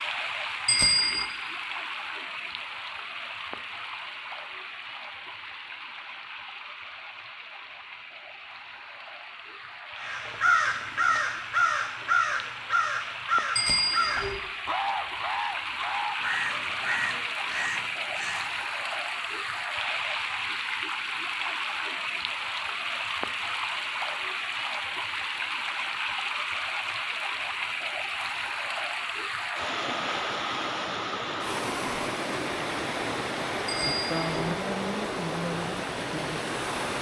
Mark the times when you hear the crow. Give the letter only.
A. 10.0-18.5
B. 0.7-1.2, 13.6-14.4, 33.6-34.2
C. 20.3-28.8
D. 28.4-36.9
A.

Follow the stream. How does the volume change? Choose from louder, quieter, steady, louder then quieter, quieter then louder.
louder.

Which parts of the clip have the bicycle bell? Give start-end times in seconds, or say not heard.
0.7-1.2, 13.6-14.4, 33.6-34.2.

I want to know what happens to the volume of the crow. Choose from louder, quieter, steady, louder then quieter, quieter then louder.
quieter.